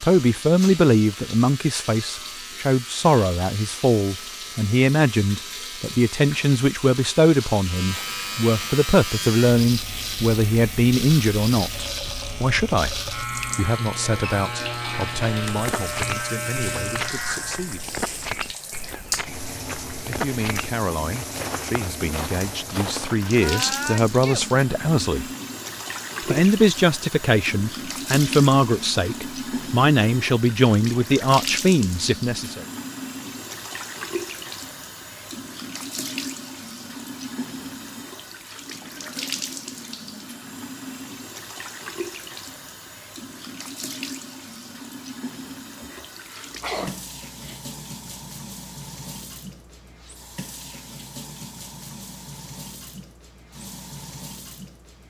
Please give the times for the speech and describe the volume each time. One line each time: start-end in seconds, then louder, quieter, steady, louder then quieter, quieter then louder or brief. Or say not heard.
0.0-18.0 quieter
20.1-25.2 louder
26.2-32.6 steady.